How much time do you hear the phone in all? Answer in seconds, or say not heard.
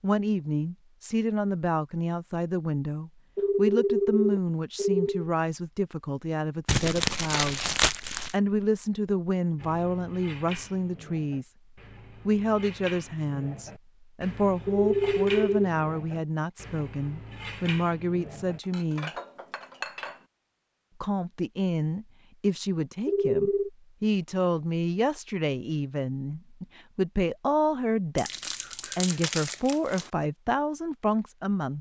4 s.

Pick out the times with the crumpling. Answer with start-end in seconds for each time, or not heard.
6.7-8.3, 28.1-30.1.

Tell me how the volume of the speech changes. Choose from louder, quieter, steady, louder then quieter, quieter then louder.
steady.